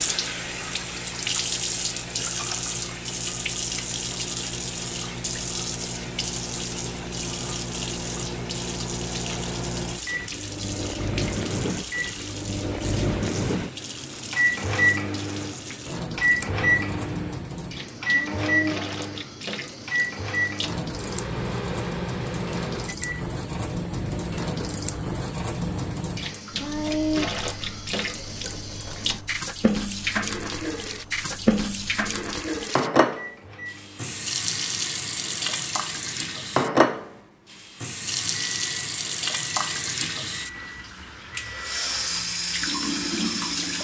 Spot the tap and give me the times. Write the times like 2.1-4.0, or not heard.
0.0-43.7.